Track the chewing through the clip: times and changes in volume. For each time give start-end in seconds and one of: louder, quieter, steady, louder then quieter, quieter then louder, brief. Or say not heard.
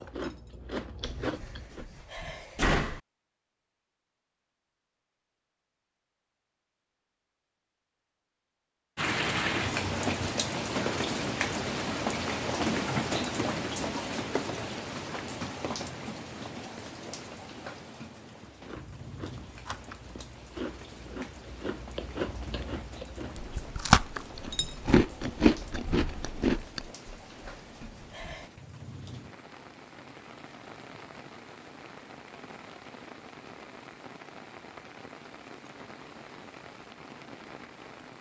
0.0-1.9 brief
18.6-26.9 louder.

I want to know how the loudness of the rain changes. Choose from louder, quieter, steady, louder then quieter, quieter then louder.
quieter.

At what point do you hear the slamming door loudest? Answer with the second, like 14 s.
3 s.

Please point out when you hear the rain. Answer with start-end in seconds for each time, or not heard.
8.9-38.1.